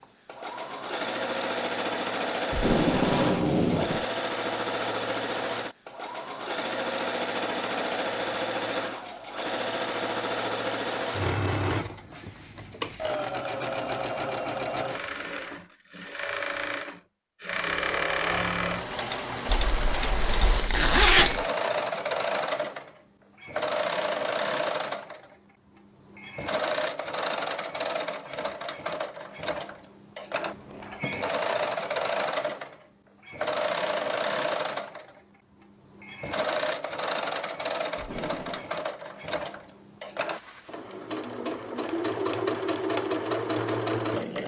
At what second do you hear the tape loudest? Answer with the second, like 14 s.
3 s.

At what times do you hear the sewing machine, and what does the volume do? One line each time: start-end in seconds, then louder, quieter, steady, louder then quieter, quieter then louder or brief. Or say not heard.
0.0-44.4 steady.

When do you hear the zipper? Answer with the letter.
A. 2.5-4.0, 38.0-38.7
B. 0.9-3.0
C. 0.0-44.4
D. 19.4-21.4
D.